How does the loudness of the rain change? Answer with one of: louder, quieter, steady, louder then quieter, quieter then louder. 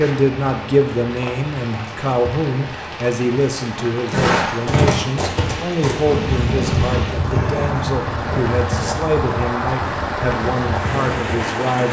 louder.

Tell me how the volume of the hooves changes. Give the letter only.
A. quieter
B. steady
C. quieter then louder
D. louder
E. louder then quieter
A.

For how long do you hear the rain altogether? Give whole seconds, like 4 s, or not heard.
12 s.